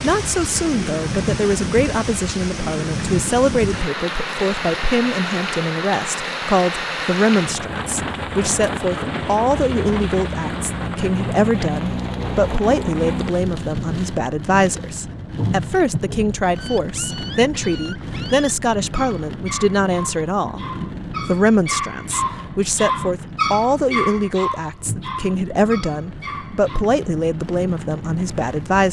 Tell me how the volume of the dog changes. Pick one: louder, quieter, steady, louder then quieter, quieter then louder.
louder then quieter.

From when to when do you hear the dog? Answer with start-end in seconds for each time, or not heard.
16.6-26.9.